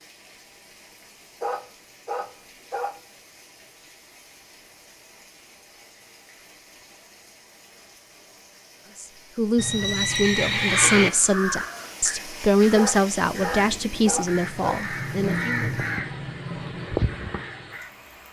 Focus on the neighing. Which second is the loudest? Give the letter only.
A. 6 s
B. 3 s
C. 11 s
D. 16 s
C.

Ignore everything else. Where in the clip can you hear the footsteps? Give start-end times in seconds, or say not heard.
not heard.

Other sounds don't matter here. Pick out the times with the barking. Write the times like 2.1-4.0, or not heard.
1.4-3.0, 12.8-14.8.